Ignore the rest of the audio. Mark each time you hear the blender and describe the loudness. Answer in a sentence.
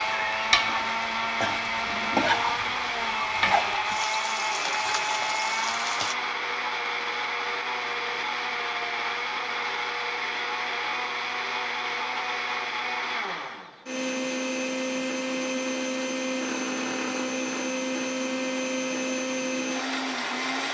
The blender can be heard from 0.0 to 20.6 s, at a steady volume.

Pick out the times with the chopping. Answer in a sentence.
You can't hear the chopping here.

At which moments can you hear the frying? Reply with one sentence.
The frying can be heard from 0.0 to 6.2 s.